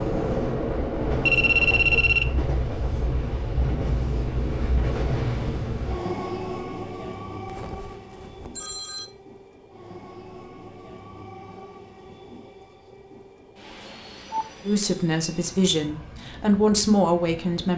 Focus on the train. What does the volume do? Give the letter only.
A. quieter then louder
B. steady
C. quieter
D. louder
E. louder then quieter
C.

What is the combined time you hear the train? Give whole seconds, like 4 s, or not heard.
18 s.